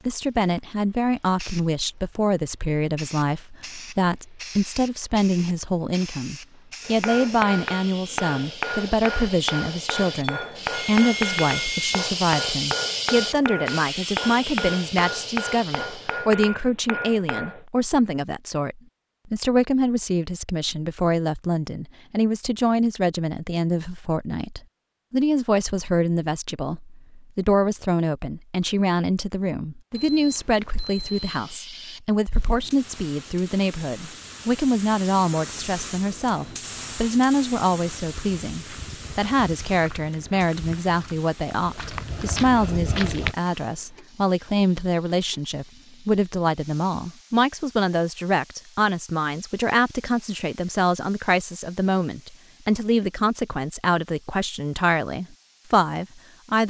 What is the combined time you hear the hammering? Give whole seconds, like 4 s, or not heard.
11 s.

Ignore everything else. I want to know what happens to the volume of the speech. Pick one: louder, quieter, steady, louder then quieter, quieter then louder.
steady.